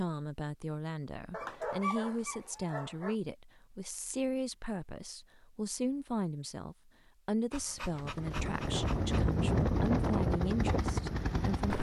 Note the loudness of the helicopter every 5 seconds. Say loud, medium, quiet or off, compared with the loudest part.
off, loud, loud.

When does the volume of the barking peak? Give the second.
2 s.